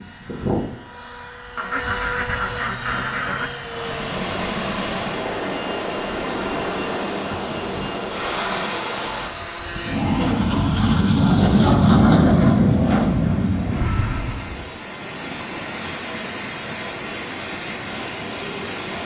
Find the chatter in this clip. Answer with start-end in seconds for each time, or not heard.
not heard.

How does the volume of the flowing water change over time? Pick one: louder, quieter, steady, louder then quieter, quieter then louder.
quieter then louder.